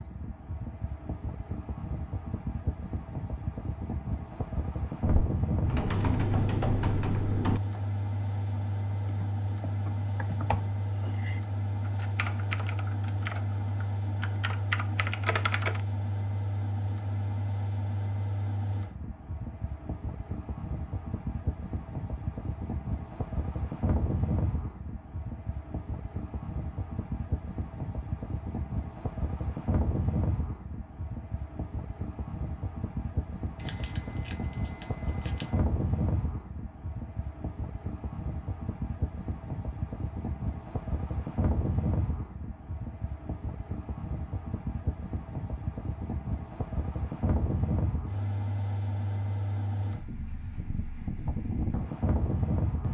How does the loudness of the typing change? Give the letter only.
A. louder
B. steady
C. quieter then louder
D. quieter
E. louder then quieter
C.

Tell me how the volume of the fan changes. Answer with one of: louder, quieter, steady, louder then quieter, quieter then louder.
steady.